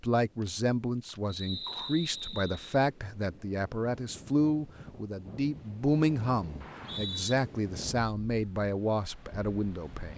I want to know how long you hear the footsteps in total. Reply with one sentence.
The footsteps can't be heard in this clip.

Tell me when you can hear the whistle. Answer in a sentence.
You can hear the whistle from 1.2 to 2.8 s and from 6.6 to 7.3 s.